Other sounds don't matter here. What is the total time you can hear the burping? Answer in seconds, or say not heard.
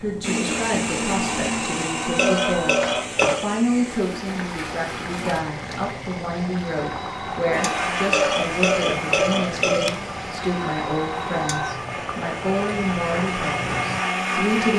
3 s.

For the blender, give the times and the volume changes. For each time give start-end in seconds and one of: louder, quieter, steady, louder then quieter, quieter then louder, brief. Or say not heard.
0.0-5.5 quieter
7.5-14.7 quieter then louder.